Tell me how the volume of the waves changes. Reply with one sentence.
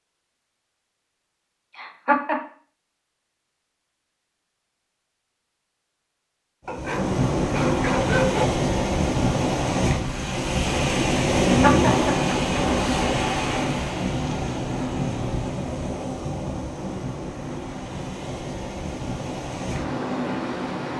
The volume of the waves goes down.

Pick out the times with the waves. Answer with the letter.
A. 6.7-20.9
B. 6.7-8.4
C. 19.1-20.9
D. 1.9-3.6
A.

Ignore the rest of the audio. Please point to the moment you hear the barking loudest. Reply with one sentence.
The volume of the barking peaks at 8 seconds.